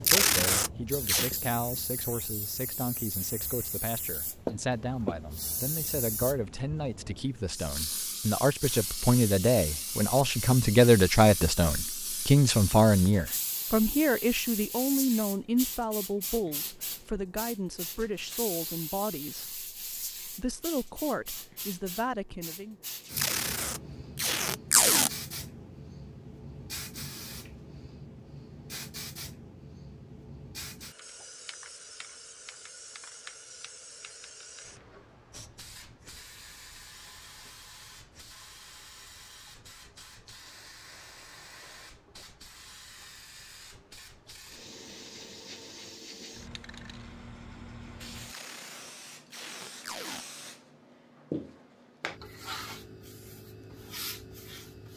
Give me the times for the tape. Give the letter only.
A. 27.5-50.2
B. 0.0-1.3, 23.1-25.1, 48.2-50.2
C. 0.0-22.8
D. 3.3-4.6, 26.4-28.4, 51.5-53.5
B.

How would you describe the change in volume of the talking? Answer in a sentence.
The loudness of the talking goes up, then down.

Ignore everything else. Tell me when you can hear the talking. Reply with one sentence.
You can hear the talking from 0.0 to 22.8 s.